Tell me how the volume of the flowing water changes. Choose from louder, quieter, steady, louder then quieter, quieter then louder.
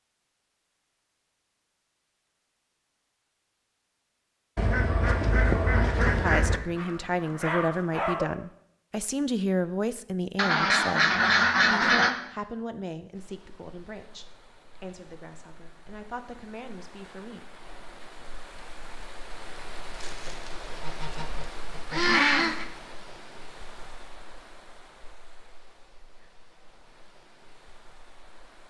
louder then quieter.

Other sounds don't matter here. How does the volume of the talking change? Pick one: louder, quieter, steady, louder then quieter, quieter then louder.
quieter.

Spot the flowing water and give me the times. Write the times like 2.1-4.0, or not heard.
13.1-28.6.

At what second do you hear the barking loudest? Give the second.
8 s.